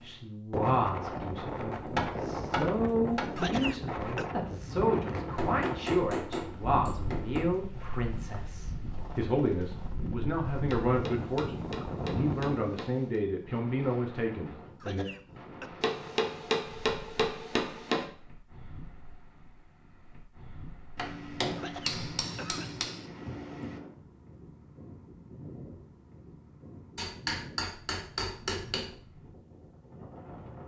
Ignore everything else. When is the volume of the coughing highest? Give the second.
4 s.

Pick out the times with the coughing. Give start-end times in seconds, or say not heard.
3.4-4.3, 14.8-15.7, 21.6-22.8.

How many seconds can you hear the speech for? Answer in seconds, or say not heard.
15 s.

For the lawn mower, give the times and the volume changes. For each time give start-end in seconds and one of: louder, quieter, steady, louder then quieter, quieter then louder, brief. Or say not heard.
not heard.